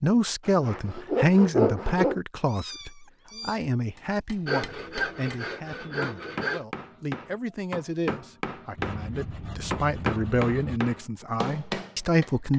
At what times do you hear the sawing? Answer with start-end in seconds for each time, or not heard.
0.4-2.2, 4.5-6.6, 8.8-10.8.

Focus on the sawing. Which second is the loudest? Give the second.
2 s.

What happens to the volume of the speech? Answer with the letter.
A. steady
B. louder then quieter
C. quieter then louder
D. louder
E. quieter
C.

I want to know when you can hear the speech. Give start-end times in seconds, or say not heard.
0.0-12.5.